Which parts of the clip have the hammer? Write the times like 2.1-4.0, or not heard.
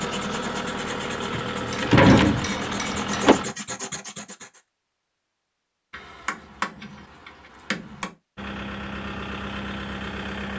1.7-3.3, 5.9-8.2.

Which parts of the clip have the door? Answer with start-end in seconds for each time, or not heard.
1.4-3.4.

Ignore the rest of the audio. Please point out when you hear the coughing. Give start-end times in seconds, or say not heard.
not heard.